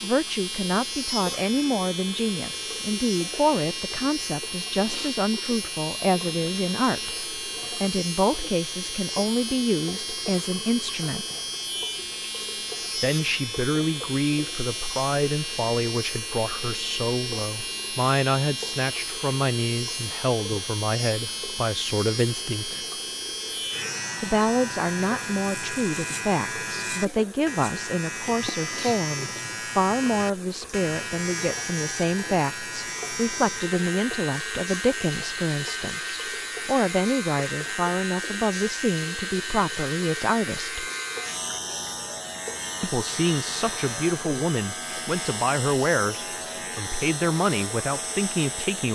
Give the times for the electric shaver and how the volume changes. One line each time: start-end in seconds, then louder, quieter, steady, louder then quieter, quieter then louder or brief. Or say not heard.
0.0-48.9 steady.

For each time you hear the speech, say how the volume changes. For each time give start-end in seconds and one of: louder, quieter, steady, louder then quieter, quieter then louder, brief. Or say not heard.
0.0-11.2 steady
12.9-22.8 steady
24.2-40.9 steady
42.8-48.9 steady.